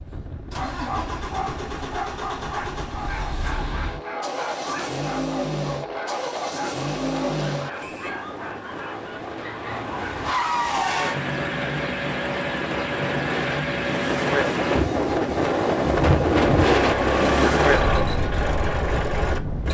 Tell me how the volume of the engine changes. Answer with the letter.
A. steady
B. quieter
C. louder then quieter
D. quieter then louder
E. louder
E.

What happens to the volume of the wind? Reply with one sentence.
The volume of the wind goes up.